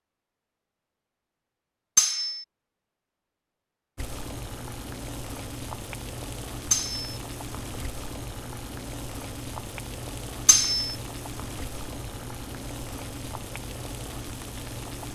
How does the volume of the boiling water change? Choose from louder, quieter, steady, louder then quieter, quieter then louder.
steady.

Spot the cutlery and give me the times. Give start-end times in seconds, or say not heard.
1.9-2.5, 6.7-7.2, 10.4-10.9.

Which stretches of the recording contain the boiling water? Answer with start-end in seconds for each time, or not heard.
4.0-15.1.